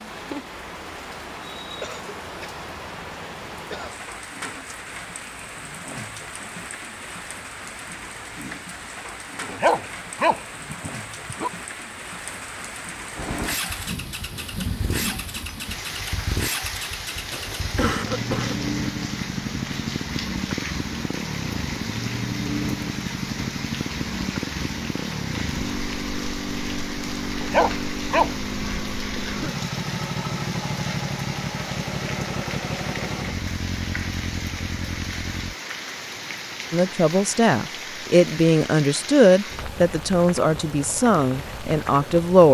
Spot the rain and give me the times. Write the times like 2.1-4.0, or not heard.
0.0-42.4.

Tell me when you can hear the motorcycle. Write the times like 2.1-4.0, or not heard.
13.2-35.5.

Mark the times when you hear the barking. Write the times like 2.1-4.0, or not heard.
9.4-11.5, 27.4-28.8.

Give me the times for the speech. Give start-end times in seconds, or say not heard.
36.7-42.4.